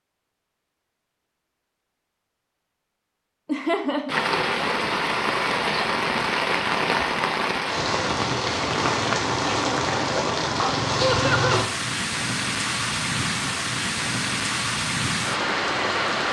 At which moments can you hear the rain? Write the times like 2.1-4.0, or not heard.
4.0-16.2.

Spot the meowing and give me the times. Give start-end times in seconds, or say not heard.
not heard.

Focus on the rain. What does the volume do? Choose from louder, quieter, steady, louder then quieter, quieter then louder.
steady.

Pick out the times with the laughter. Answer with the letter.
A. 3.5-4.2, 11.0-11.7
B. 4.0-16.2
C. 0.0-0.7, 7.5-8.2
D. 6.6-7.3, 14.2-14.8
A.